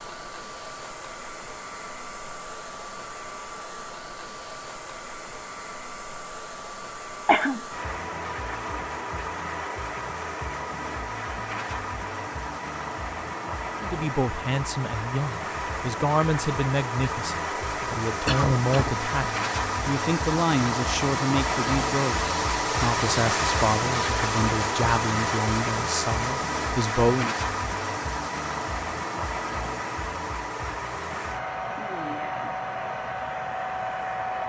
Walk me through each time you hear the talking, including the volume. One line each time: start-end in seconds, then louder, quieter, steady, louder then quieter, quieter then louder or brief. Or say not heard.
13.8-27.4 steady.